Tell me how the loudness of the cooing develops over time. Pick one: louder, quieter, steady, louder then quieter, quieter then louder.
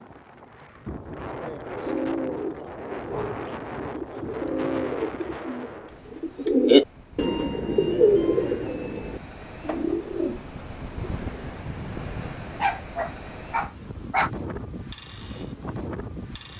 louder then quieter.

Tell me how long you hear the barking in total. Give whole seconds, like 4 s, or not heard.
2 s.